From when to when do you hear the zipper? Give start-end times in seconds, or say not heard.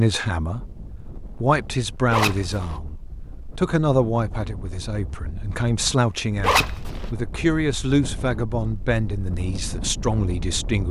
2.1-2.8, 6.4-7.1.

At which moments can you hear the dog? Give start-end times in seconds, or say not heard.
not heard.